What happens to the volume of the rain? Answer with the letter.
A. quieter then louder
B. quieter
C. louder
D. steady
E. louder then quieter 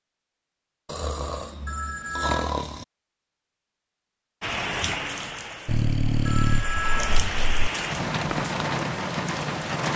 A.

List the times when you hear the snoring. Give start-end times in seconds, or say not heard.
0.8-2.9, 5.7-7.7.